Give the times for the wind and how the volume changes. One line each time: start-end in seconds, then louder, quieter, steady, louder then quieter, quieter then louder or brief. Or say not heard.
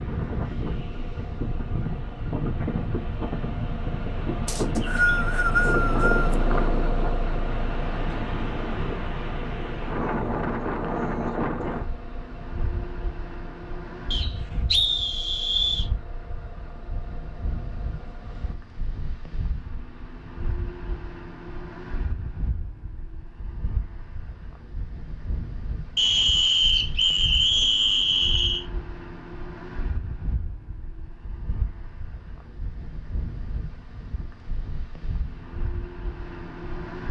0.0-37.0 quieter.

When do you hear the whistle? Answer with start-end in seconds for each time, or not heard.
4.5-6.3, 14.1-15.8, 25.9-28.6.